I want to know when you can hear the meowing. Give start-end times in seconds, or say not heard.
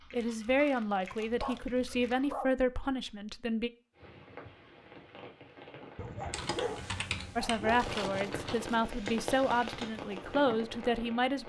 not heard.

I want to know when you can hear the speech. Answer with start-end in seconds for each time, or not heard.
0.1-3.7, 7.3-11.4.